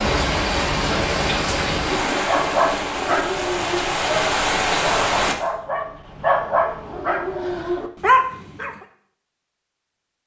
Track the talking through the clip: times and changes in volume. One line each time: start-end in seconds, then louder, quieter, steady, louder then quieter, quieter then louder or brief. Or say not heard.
not heard.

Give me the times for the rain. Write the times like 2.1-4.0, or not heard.
0.0-5.3.